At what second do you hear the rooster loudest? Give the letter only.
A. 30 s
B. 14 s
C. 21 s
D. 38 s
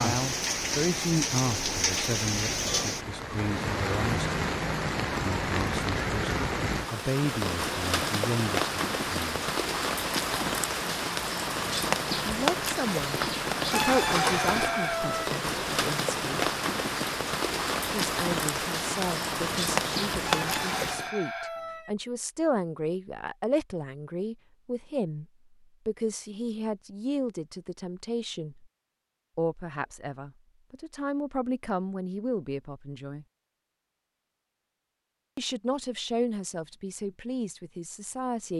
B.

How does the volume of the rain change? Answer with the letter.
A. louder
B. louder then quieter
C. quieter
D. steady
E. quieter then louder
D.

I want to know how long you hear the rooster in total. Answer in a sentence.
The rooster can be heard for 3 seconds in total.